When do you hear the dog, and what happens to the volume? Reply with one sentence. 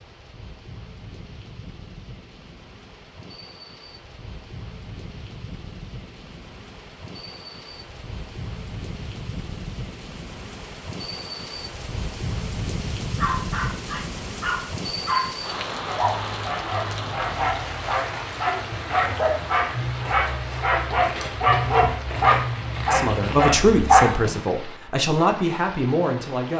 You can hear the dog from 13.2 to 24.4 s, getting louder.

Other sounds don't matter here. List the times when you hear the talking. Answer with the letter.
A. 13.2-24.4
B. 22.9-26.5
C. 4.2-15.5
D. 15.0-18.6
B.